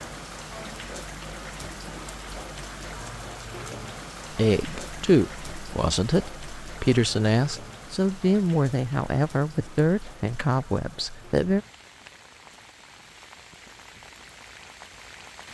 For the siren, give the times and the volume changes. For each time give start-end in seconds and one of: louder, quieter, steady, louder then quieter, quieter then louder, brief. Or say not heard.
not heard.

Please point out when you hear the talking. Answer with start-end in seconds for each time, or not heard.
4.3-11.6.